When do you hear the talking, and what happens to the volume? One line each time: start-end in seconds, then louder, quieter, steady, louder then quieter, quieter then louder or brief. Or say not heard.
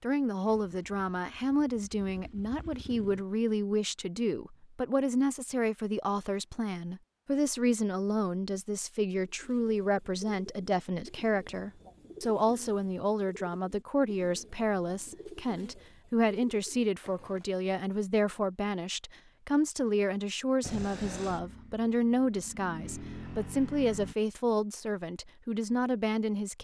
0.0-26.5 steady.